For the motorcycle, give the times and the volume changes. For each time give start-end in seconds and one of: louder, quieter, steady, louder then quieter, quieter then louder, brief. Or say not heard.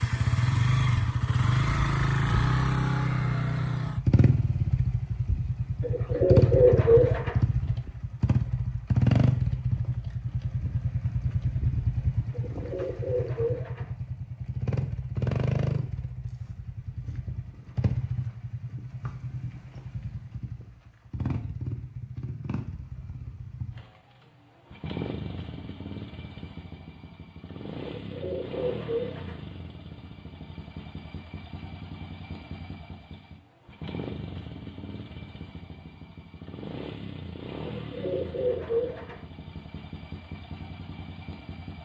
0.0-41.8 quieter.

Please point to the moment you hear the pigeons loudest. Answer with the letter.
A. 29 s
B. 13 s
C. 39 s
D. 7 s
D.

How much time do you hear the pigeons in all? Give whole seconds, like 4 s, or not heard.
6 s.